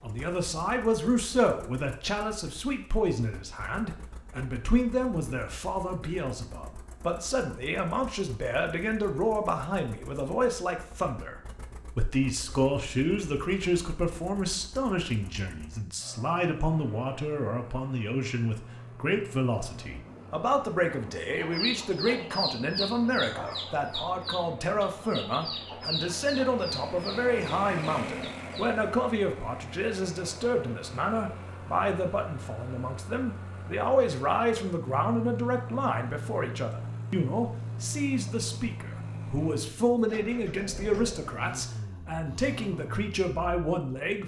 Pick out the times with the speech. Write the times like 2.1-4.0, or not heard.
0.0-44.2.